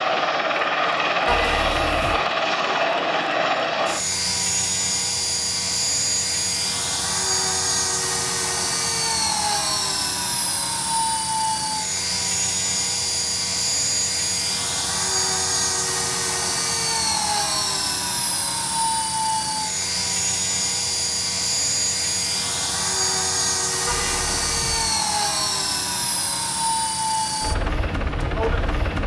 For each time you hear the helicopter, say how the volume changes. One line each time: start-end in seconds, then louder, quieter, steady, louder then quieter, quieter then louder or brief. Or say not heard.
0.0-29.0 steady.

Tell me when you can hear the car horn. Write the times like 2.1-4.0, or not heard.
1.2-2.2, 23.9-24.9.